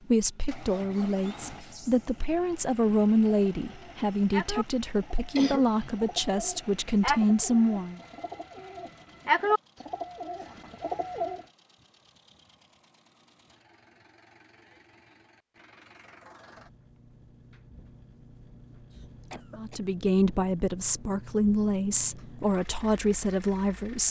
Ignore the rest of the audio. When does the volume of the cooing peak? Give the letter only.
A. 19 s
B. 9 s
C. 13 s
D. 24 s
B.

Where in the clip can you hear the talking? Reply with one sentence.
The talking can be heard from 0.1 to 8.0 s and from 19.6 to 24.0 s.